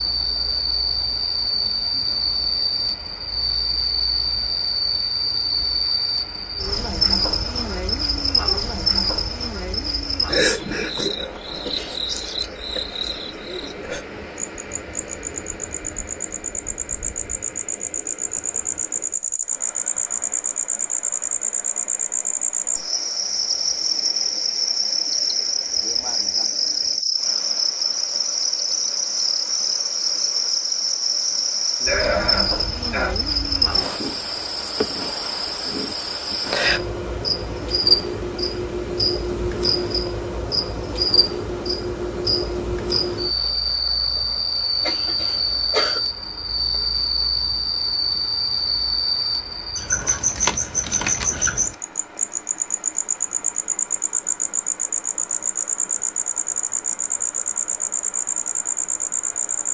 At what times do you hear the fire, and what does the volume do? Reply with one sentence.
You can't hear the fire here.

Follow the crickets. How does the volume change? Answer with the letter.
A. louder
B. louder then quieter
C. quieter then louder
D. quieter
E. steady
E.